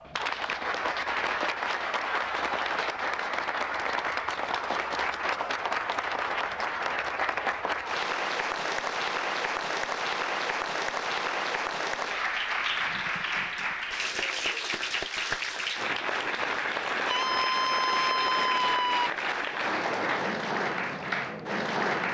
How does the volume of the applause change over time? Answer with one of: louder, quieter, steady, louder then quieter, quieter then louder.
steady.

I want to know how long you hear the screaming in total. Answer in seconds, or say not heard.
2 s.